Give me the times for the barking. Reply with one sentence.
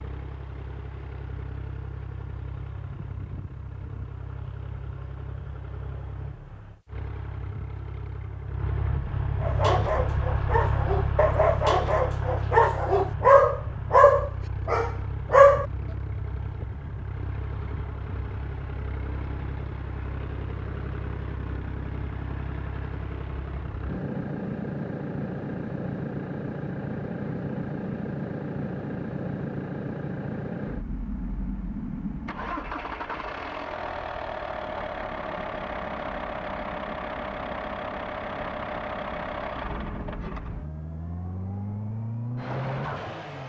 You can hear the barking from 9.4 to 15.7 s.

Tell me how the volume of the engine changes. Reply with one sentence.
The loudness of the engine goes up.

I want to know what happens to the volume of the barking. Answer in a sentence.
The volume of the barking goes up, then down.